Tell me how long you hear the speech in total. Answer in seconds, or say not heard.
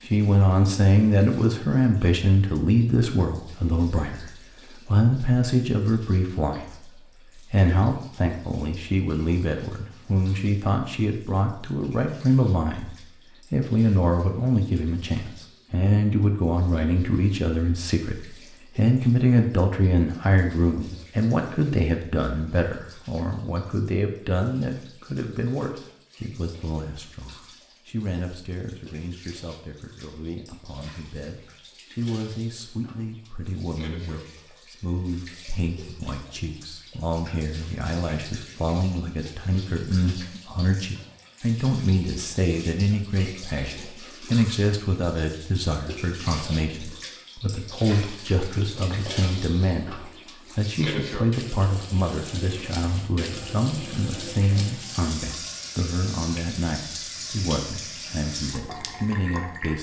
60 s.